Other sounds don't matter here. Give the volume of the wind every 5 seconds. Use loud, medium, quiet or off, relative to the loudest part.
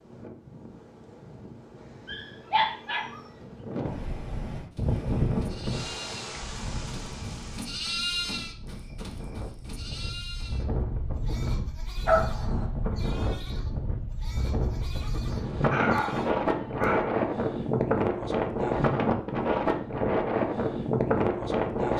quiet, medium, medium, loud, loud.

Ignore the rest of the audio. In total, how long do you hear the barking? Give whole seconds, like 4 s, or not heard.
3 s.